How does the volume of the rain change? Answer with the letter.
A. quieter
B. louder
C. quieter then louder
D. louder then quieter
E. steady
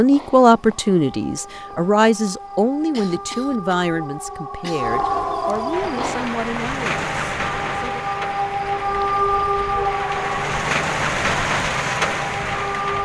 C.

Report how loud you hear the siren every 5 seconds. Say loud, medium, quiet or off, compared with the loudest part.
medium, loud, loud.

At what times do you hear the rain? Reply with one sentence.
The rain can be heard from 5.7 to 13.0 s.